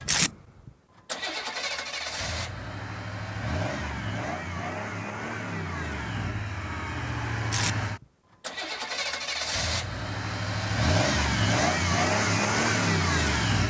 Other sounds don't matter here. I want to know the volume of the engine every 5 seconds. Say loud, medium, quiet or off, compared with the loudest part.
medium, medium, loud.